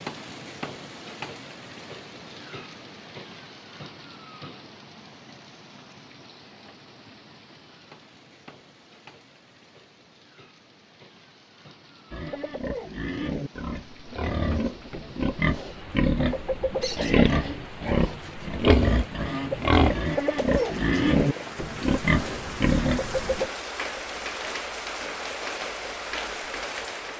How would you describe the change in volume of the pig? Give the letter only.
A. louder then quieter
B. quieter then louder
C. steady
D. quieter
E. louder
E.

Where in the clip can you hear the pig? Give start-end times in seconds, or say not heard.
12.1-23.5.